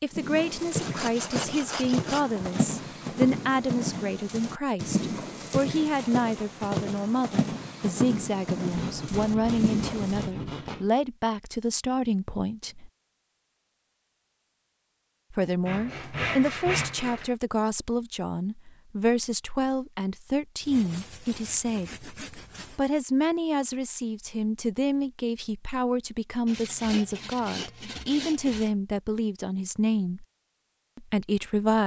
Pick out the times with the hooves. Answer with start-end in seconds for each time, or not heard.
0.1-10.3.